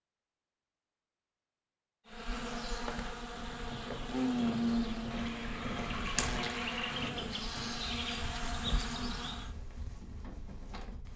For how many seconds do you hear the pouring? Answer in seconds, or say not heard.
2 s.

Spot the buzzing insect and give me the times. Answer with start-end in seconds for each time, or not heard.
2.0-9.5.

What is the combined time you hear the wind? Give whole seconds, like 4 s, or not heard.
8 s.